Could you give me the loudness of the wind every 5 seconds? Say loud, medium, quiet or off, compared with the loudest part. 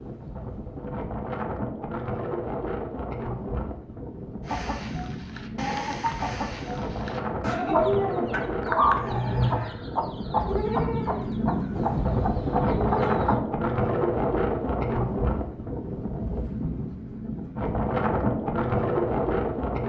medium, medium, loud, loud.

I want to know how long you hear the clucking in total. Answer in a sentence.
The clucking can be heard for 9 seconds in total.